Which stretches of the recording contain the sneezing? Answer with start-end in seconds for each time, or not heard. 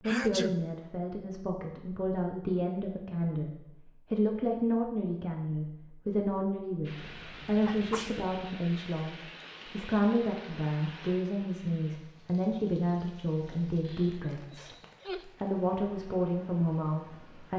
0.0-0.6, 7.0-8.2, 13.8-15.2.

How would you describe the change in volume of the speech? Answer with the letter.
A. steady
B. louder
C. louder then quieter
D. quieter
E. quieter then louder
A.